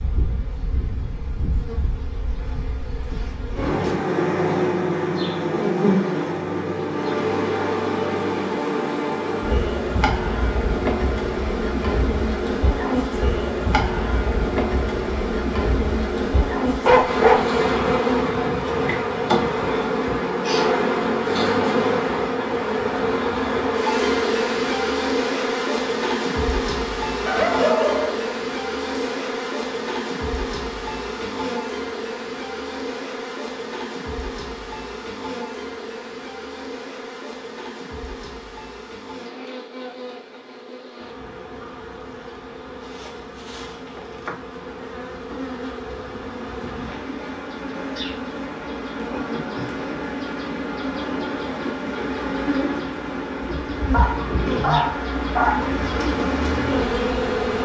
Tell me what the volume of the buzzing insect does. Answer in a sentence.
The volume of the buzzing insect goes down, then up.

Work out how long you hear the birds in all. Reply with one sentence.
The birds can't be heard in this clip.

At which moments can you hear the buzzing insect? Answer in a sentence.
The buzzing insect can be heard from 0.0 to 57.5 s.